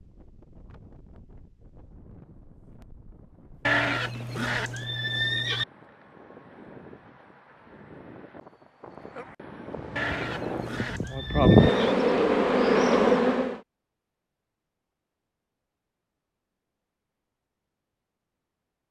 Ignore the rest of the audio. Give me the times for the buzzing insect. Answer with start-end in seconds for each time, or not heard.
9.8-13.6.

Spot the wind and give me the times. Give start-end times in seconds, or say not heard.
0.0-10.9.